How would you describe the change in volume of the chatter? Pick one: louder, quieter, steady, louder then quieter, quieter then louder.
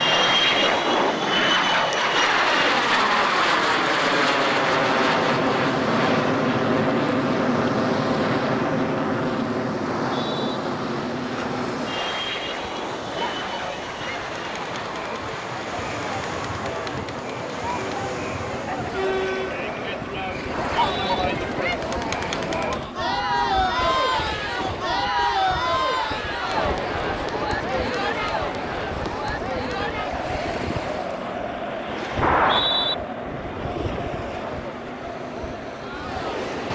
louder then quieter.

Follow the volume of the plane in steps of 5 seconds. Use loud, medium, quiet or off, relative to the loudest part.
loud, loud, medium, quiet, quiet, quiet, quiet, quiet.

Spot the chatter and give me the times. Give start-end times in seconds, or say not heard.
12.1-36.5.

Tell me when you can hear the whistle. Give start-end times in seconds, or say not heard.
9.8-10.4, 20.5-21.2, 32.2-33.0.